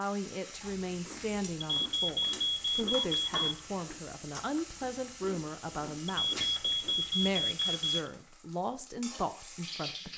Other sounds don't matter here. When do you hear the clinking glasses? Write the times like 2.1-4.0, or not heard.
not heard.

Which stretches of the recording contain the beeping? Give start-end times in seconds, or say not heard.
1.6-3.6, 6.1-8.1.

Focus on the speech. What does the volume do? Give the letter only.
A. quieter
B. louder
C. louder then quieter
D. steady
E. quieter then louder
D.